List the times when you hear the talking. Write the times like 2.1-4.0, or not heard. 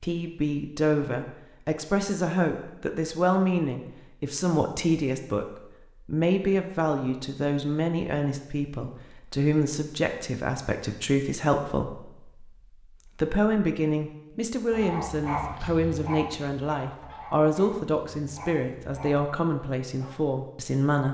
0.0-12.5, 13.2-21.0.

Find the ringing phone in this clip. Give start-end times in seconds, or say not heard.
not heard.